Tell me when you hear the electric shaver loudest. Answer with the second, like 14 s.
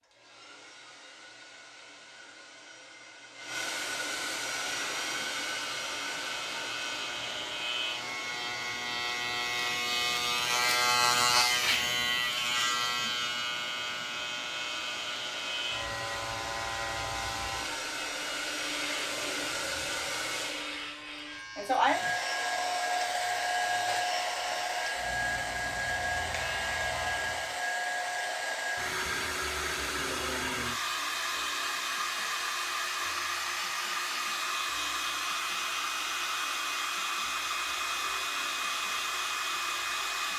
11 s.